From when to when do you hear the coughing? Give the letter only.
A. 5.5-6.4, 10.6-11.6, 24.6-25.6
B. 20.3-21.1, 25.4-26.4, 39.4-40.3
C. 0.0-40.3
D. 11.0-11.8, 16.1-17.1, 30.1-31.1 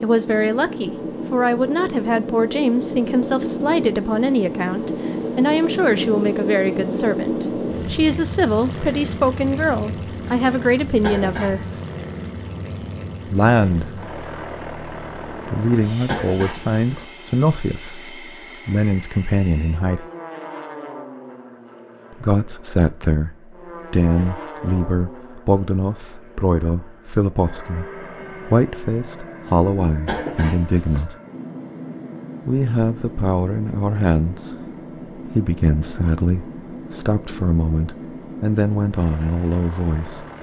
D.